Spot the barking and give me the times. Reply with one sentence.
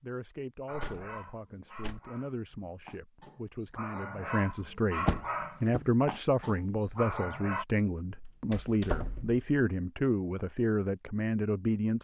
You can hear the barking from 0.7 to 7.7 s.